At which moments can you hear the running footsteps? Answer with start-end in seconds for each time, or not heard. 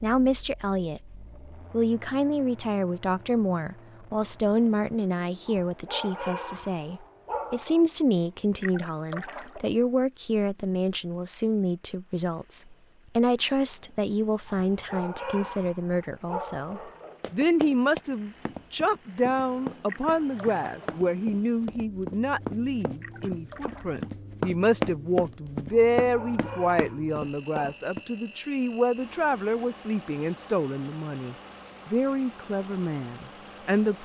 17.2-28.0.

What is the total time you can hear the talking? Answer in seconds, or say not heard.
34 s.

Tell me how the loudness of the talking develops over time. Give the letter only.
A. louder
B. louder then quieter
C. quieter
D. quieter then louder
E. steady
E.